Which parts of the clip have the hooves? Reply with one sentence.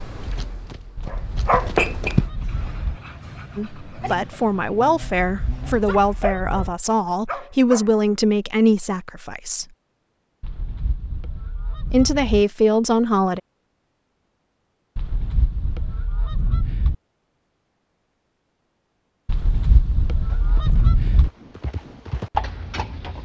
The hooves can be heard from 0.0 to 2.3 s and from 20.2 to 23.2 s.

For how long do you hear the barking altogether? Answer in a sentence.
You can hear the barking for 7 seconds altogether.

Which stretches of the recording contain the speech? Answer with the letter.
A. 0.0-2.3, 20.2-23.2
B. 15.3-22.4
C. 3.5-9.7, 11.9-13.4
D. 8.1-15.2
C.